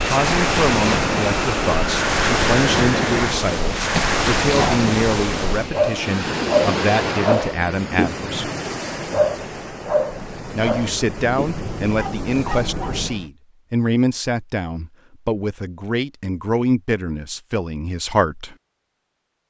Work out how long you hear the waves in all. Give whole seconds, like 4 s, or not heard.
13 s.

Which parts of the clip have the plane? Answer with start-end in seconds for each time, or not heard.
0.0-3.4.